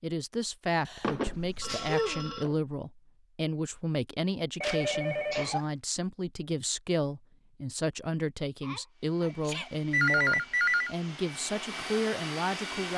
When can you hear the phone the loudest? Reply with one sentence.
The volume of the phone peaks at 10 seconds.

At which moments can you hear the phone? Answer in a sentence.
The phone can be heard from 1.0 to 2.5 s, from 4.6 to 5.5 s and from 9.9 to 10.9 s.